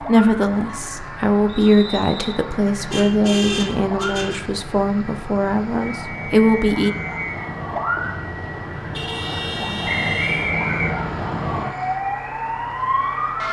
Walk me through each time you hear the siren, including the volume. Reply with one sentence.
The siren can be heard from 0.0 to 13.4 s, getting louder.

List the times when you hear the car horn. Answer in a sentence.
You can hear the car horn from 2.9 to 4.4 s and from 8.9 to 10.6 s.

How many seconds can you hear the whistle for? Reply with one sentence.
You can hear the whistle for 4 seconds altogether.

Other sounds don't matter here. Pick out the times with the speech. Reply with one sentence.
You can hear the speech from 0.1 to 6.9 s.